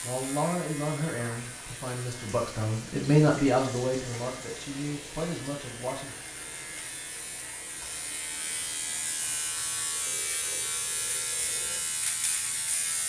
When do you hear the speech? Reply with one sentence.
The speech can be heard from 0.0 to 6.2 s.